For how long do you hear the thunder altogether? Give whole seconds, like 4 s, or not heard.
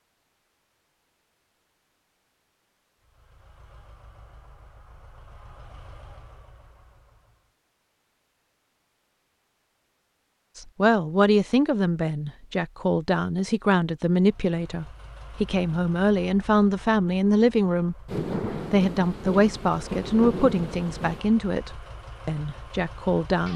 3 s.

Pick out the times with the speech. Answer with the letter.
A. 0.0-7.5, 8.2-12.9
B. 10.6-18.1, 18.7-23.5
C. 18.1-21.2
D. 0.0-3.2
B.